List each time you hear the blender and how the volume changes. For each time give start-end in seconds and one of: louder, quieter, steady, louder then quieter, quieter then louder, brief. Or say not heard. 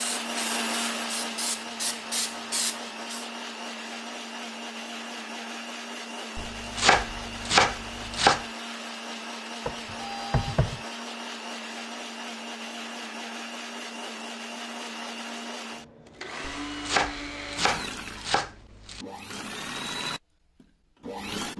0.0-21.5 steady.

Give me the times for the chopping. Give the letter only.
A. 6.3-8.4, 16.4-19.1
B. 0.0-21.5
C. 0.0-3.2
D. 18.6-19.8
A.